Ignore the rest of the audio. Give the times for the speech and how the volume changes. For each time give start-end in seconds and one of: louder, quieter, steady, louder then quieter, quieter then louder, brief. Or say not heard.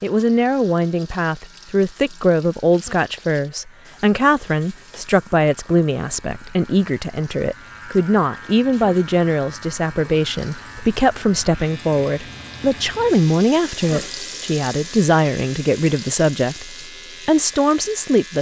0.0-18.3 steady.